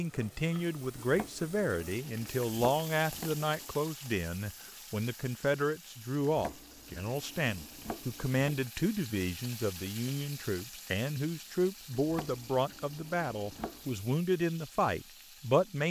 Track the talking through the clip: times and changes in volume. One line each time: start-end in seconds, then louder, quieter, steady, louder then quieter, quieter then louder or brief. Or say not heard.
0.0-15.8 steady.